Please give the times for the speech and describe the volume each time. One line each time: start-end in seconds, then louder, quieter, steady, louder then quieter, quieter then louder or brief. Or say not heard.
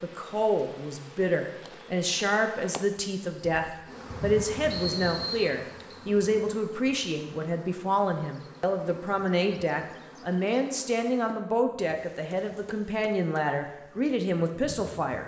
0.0-15.2 steady.